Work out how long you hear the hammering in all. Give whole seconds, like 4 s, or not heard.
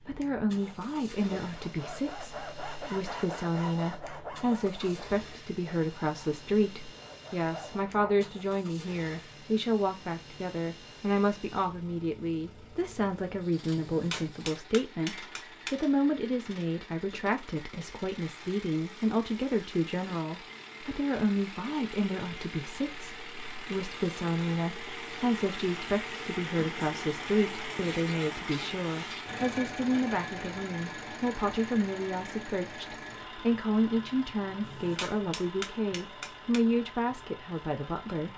4 s.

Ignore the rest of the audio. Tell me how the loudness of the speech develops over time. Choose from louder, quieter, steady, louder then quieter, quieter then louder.
steady.